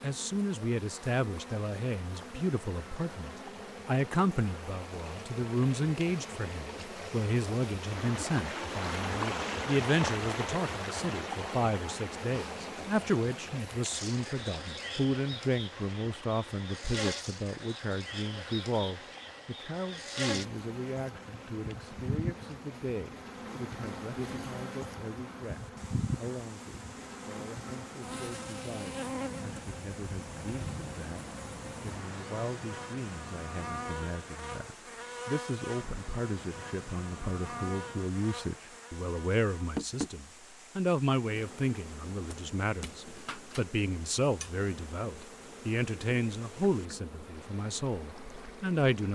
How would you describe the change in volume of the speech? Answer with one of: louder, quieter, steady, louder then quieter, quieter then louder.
quieter then louder.